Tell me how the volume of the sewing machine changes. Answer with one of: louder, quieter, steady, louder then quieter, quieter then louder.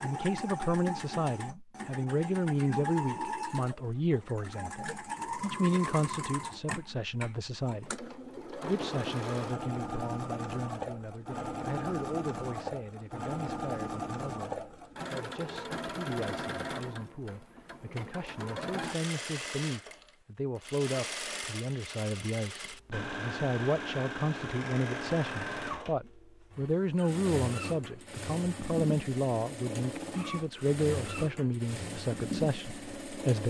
steady.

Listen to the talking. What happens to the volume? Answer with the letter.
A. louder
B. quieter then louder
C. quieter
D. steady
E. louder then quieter
B.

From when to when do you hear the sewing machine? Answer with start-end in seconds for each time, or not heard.
0.0-33.4.